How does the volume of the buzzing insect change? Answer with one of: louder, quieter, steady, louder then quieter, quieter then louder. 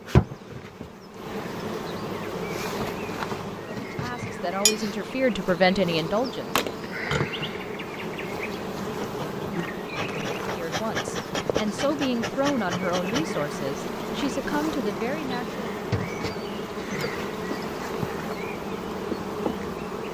steady.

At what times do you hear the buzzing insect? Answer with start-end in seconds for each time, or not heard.
0.0-20.0.